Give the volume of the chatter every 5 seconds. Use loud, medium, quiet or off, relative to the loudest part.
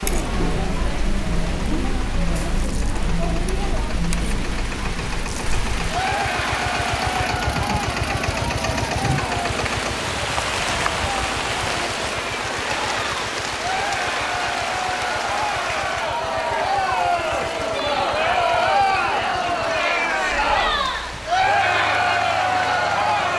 medium, medium, medium, loud, loud.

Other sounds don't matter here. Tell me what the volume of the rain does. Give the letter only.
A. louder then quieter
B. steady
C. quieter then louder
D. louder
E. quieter
A.